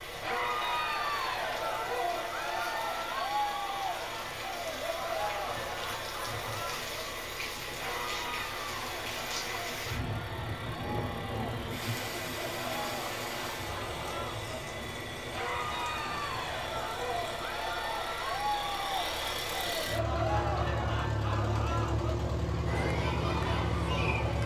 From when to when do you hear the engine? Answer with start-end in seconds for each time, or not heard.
0.0-24.4.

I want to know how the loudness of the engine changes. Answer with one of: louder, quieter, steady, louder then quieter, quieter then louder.
louder.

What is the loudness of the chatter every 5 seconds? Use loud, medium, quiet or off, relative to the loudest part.
loud, medium, medium, loud, loud.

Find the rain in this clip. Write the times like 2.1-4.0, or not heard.
0.0-17.5.